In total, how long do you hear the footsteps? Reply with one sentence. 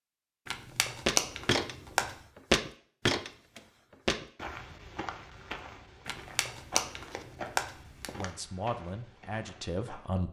You can hear the footsteps for 9 seconds altogether.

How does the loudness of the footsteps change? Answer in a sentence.
The loudness of the footsteps goes down.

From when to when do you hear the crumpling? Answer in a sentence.
You can hear the crumpling from 0.5 to 2.1 s and from 6.0 to 8.3 s.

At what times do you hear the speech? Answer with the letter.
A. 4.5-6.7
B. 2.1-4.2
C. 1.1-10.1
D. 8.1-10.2
D.